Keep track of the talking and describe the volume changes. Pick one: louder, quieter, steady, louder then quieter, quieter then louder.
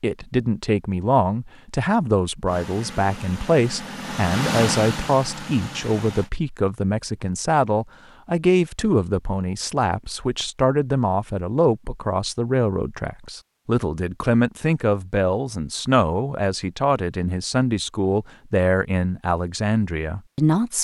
steady.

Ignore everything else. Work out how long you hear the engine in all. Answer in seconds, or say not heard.
4 s.